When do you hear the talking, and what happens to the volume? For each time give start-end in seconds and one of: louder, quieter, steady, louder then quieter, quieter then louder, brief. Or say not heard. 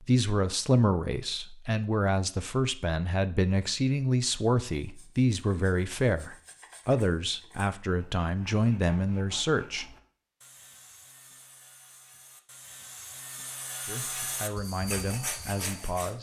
0.0-9.8 steady
13.8-16.1 brief.